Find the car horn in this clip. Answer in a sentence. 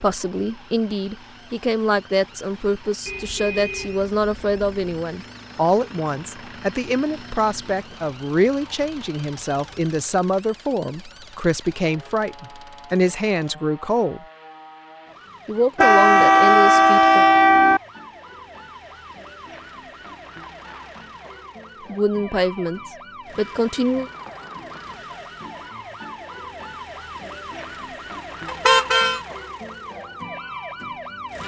The car horn can be heard from 3.0 to 4.8 s, from 15.8 to 17.8 s and from 28.4 to 29.2 s.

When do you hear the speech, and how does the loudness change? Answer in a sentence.
You can hear the speech from 0.0 to 14.2 s, at a steady volume; briefly from 15.4 to 17.2 s; and briefly from 21.9 to 24.1 s.